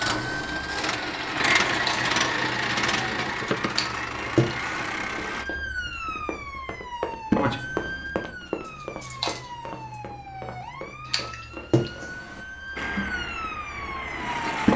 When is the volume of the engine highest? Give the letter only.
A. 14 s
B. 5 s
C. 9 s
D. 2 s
D.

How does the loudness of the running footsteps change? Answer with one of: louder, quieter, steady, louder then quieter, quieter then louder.
louder then quieter.